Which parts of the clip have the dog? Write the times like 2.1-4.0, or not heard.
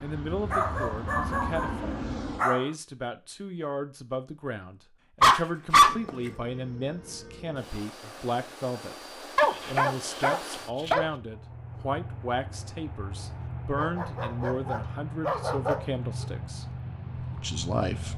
0.5-2.7, 5.2-6.3, 9.3-11.1, 13.8-16.2.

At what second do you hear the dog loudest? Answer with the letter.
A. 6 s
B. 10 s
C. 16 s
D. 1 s
A.